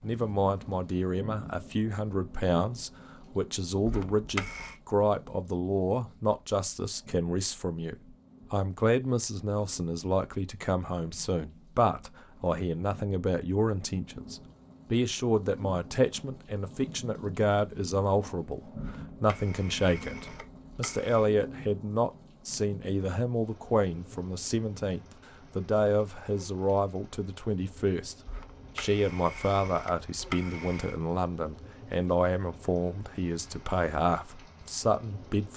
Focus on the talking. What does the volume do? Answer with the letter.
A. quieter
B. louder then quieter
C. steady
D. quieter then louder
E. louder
C.